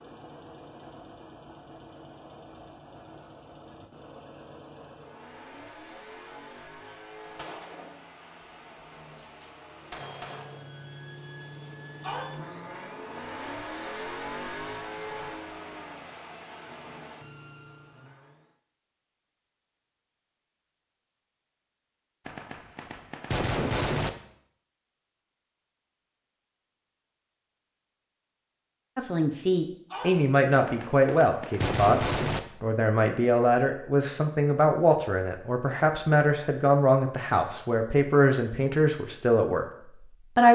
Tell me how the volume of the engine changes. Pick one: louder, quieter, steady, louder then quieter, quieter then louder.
louder.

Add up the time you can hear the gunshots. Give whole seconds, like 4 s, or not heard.
6 s.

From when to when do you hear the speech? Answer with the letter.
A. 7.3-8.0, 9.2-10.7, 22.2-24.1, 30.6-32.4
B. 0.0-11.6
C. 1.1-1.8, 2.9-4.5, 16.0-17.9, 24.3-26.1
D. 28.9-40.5
D.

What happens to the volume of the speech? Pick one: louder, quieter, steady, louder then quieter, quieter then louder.
steady.